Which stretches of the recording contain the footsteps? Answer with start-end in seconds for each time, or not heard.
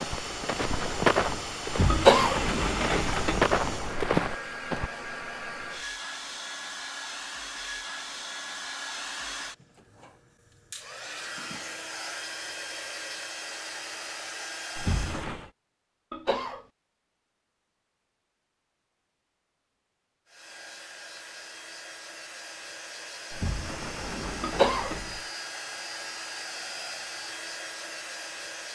0.0-4.9.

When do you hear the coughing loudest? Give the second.
2 s.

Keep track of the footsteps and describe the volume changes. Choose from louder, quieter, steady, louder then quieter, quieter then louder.
quieter then louder.